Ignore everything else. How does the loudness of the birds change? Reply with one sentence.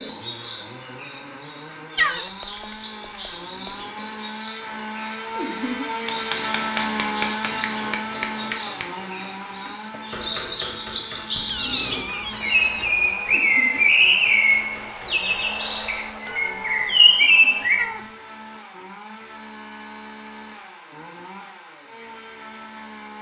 The loudness of the birds goes up.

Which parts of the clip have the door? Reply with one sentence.
You can't hear the door here.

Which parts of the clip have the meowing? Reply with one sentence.
The meowing can be heard from 1.9 to 3.9 s, from 11.4 to 13.1 s and from 16.2 to 18.1 s.